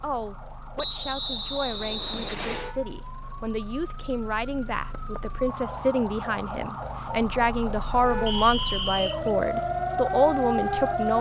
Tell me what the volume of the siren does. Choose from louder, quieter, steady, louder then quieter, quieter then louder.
louder.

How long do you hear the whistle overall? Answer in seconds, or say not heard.
3 s.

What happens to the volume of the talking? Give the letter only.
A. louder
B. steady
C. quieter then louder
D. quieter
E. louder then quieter
A.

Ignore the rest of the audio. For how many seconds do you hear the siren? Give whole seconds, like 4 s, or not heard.
11 s.